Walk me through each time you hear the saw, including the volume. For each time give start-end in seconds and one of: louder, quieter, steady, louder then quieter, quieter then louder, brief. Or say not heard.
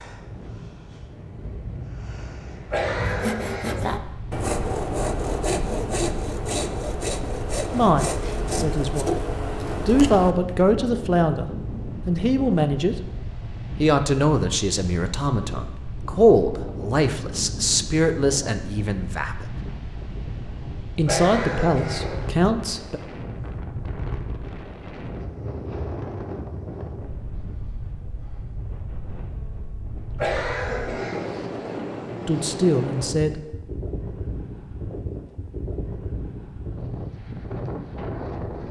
3.0-10.6 steady.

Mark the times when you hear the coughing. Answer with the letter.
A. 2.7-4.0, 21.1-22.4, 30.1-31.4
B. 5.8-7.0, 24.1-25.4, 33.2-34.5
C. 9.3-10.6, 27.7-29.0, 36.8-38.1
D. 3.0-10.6
A.